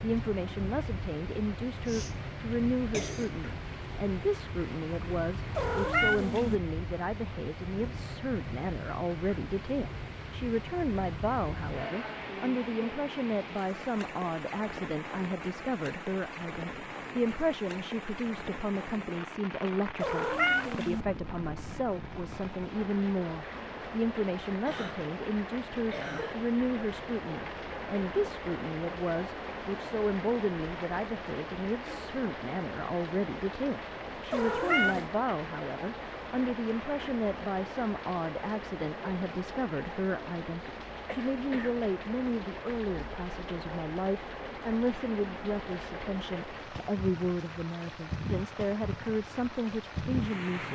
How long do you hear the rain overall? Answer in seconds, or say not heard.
51 s.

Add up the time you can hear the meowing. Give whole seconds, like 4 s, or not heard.
3 s.